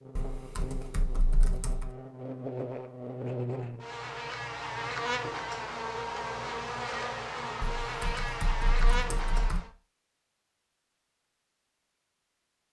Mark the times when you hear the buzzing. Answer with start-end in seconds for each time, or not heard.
0.0-9.7.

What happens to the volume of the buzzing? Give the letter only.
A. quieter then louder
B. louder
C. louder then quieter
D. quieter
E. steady
B.